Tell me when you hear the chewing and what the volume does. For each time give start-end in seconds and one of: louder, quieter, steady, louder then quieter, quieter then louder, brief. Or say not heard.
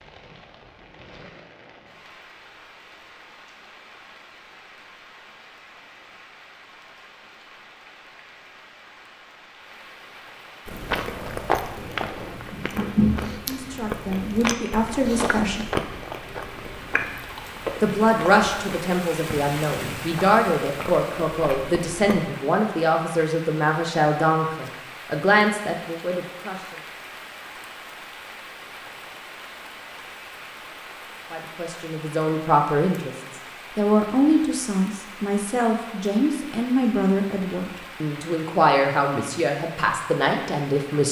10.7-22.2 quieter.